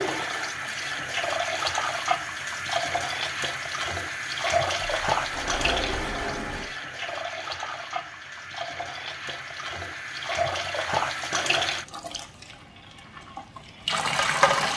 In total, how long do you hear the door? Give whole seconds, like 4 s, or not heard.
2 s.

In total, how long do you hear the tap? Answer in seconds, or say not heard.
15 s.